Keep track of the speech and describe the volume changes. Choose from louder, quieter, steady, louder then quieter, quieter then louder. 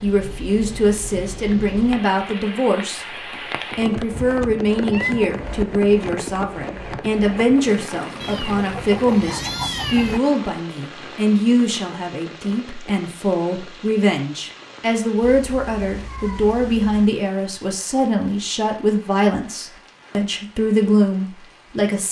steady.